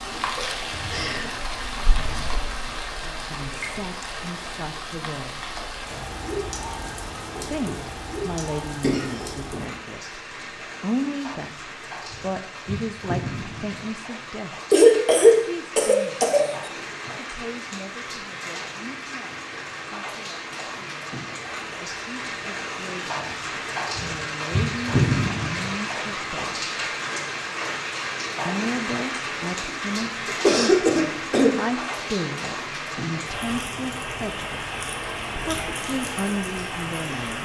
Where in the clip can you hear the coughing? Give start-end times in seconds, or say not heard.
8.8-9.6, 14.7-16.7, 29.6-31.5.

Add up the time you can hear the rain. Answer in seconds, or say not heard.
37 s.